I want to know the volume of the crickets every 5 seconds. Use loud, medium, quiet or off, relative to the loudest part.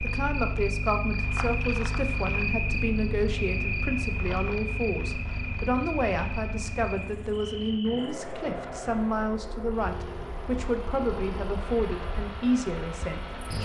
loud, medium, medium.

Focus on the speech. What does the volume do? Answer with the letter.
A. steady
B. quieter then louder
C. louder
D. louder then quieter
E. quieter
A.